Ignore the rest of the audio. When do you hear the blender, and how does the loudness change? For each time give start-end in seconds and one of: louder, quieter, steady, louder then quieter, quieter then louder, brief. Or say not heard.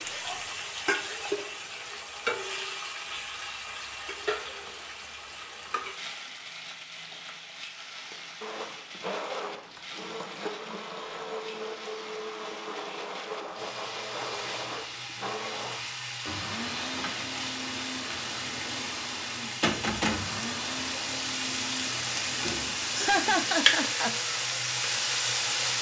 8.1-25.7 steady.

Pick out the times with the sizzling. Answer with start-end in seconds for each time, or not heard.
0.0-25.7.